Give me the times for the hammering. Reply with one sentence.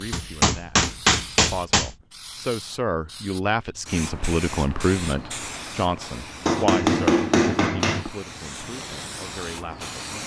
The hammering can be heard from 0.1 to 1.9 s and from 6.5 to 8.1 s.